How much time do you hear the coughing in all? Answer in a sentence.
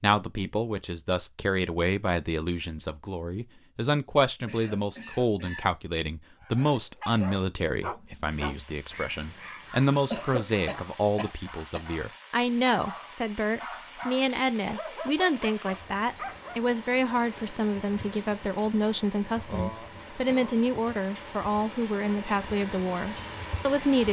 The coughing can be heard for 4 seconds in total.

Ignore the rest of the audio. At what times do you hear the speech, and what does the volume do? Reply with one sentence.
The speech can be heard from 0.0 to 24.0 s, at a steady volume.